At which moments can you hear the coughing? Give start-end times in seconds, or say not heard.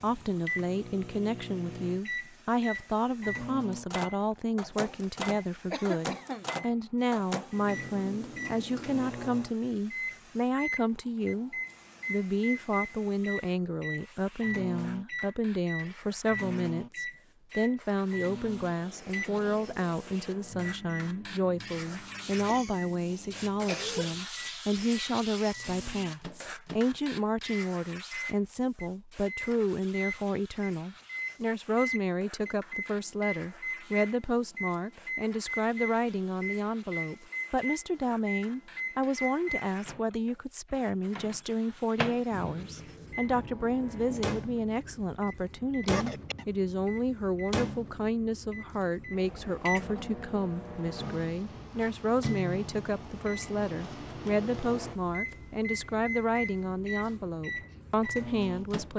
5.7-6.5, 22.4-24.1, 45.8-46.5.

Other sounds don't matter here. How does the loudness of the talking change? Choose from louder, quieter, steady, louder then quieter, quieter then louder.
steady.